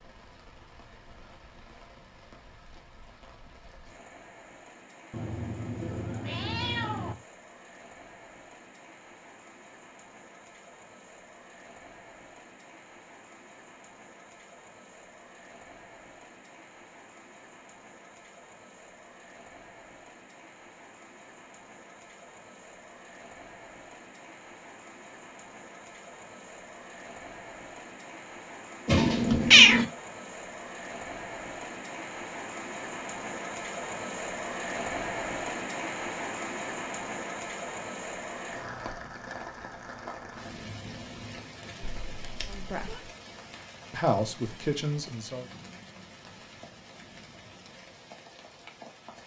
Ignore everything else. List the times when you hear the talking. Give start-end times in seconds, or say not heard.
42.5-43.1, 43.9-45.5.